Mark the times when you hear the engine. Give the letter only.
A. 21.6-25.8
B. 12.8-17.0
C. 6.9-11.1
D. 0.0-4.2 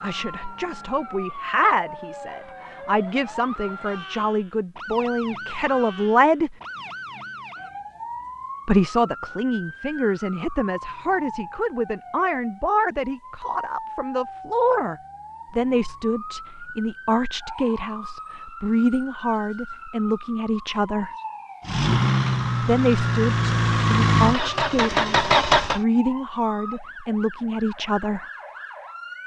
A.